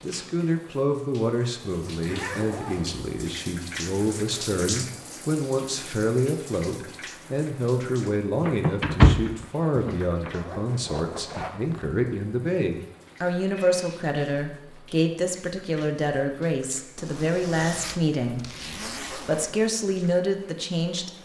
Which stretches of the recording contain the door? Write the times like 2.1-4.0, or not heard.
8.4-10.3.